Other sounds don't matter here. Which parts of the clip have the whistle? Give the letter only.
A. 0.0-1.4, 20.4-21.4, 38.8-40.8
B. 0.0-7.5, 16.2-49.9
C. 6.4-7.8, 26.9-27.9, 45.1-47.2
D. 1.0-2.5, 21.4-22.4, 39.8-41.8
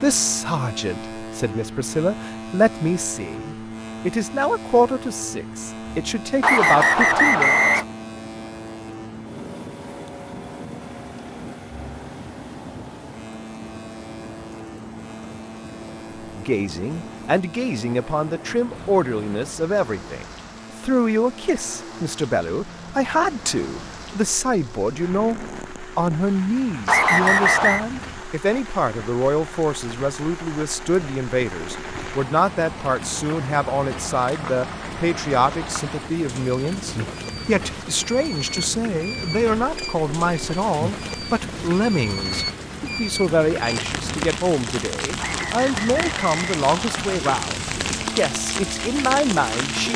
C.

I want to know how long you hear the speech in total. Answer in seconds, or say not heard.
41 s.